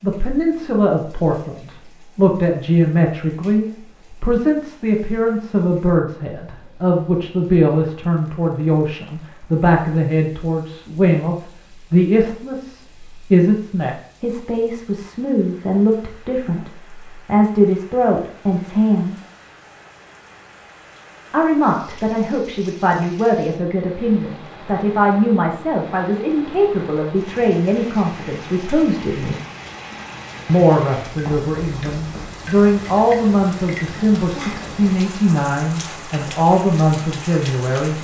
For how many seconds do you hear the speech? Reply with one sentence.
You can hear the speech for 35 seconds altogether.